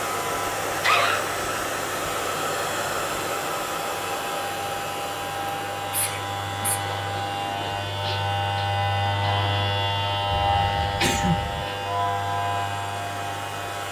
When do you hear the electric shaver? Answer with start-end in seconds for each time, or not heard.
0.0-13.8.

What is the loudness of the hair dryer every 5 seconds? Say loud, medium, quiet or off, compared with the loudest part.
loud, medium, medium.